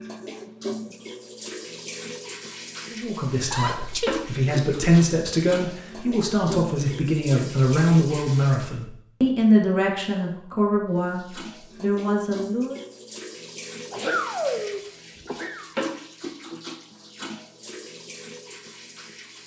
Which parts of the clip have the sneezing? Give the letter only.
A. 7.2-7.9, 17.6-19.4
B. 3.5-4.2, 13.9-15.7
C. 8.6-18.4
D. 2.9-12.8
B.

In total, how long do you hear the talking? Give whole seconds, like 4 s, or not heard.
10 s.